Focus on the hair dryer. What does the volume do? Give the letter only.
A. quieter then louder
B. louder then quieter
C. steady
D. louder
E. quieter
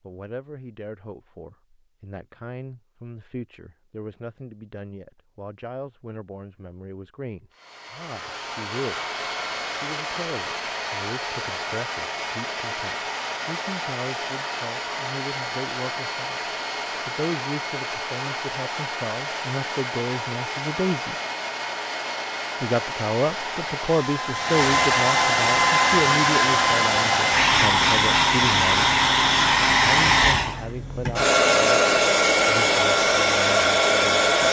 D.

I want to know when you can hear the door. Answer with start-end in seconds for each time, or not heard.
not heard.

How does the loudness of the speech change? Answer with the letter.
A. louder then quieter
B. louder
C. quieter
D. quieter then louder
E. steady
A.